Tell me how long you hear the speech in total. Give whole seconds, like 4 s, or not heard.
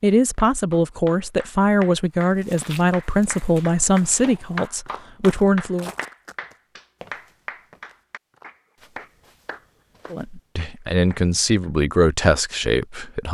9 s.